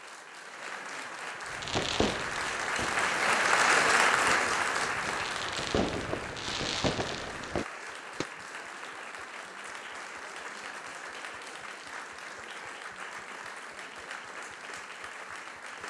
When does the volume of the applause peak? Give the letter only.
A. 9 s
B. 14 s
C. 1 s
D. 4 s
D.